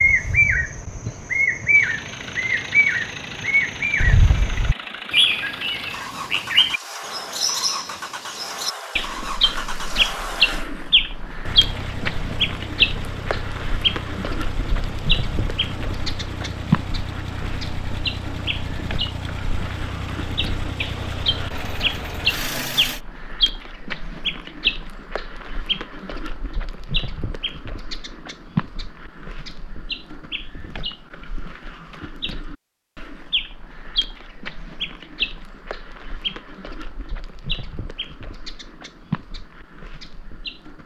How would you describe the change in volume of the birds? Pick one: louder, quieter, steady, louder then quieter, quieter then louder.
quieter.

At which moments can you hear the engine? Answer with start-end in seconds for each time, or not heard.
1.7-23.0.